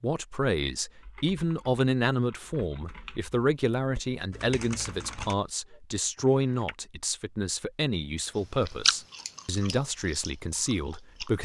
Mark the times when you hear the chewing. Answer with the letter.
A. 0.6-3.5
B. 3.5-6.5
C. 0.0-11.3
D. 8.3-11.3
D.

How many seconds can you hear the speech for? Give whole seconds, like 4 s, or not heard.
11 s.